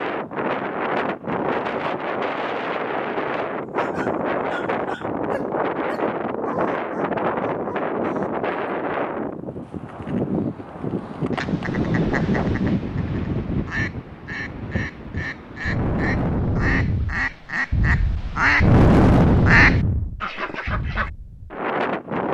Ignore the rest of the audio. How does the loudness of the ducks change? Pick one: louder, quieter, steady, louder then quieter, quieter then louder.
louder.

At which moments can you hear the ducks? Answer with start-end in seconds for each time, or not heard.
11.3-21.1.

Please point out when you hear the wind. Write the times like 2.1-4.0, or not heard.
0.0-22.2.